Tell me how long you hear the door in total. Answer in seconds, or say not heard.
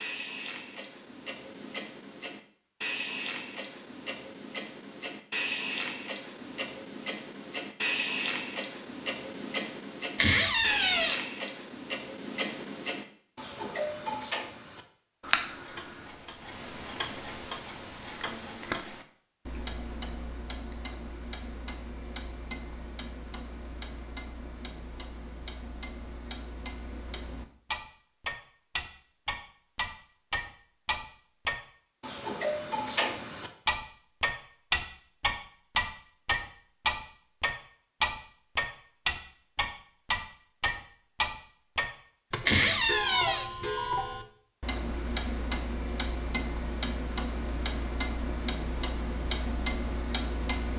2 s.